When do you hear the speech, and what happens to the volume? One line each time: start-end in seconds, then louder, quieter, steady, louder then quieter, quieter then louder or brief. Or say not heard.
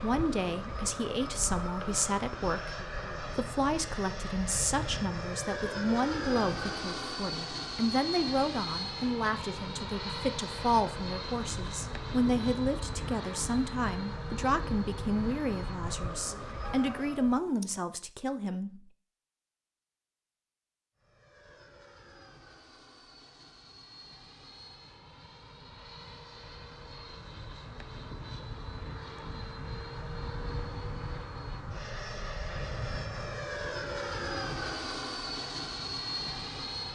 0.0-18.9 steady.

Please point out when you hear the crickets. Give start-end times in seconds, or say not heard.
not heard.